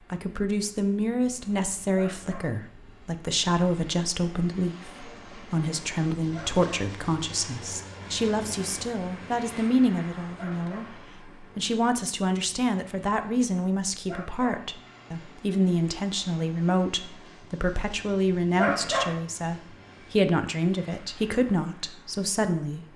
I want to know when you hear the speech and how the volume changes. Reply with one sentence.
You can hear the speech from 0.1 to 22.9 s, at a steady volume.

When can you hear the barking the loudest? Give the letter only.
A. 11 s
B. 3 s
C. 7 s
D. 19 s
D.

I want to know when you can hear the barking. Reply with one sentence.
The barking can be heard from 1.9 to 2.5 s, from 6.3 to 6.7 s, from 10.3 to 10.9 s, from 14.1 to 14.7 s and from 18.6 to 19.1 s.